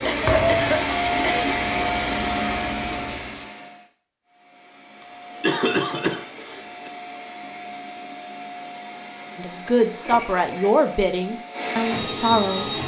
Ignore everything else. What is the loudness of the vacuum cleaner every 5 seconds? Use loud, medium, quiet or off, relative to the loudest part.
loud, quiet, loud.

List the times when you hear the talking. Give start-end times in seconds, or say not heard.
9.3-12.7.